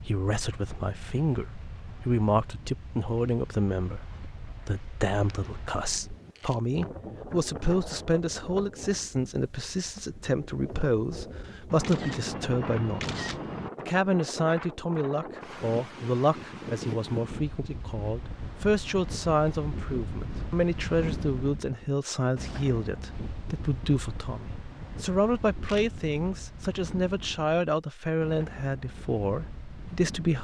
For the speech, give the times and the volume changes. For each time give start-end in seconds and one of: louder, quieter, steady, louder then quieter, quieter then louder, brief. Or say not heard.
0.0-30.3 steady.